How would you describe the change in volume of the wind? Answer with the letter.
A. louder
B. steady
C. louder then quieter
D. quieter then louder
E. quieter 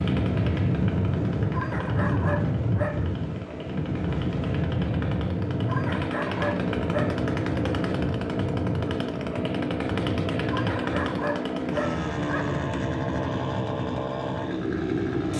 E.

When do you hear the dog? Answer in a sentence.
You can hear the dog from 1.5 to 3.2 s, from 5.7 to 7.2 s and from 10.5 to 12.4 s.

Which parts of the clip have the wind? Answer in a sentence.
The wind can be heard from 0.0 to 15.3 s.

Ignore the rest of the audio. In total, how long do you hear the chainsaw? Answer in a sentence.
The chainsaw can be heard for 15 seconds in total.